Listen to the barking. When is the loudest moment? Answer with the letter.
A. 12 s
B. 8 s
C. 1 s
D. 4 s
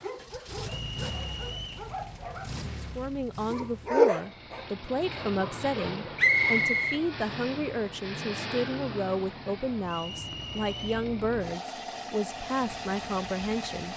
D.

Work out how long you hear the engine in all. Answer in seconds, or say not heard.
14 s.